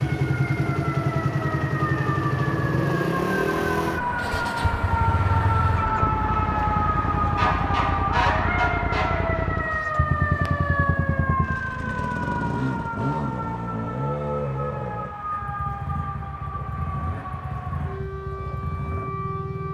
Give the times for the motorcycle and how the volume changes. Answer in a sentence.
The motorcycle can be heard from 0.0 to 19.6 s, getting quieter.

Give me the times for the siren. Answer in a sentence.
You can hear the siren from 0.0 to 19.6 s.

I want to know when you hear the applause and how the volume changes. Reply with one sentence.
You can't hear the applause here.